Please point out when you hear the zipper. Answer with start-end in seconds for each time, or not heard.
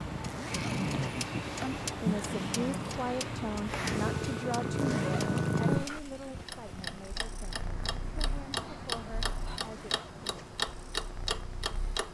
0.2-1.2, 4.8-5.4, 9.6-10.6.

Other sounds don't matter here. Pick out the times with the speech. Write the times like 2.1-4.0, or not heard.
1.9-9.9.